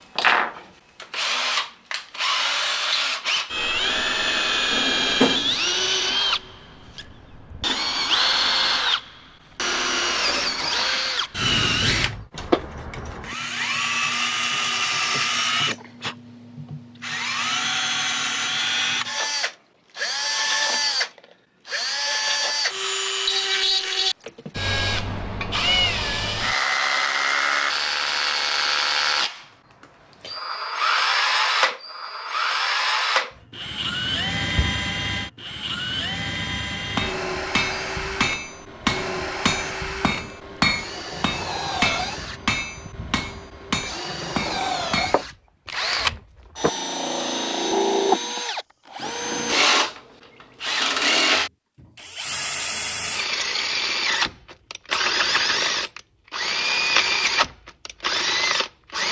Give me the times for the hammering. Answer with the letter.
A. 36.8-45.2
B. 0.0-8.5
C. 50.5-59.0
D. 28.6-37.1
A.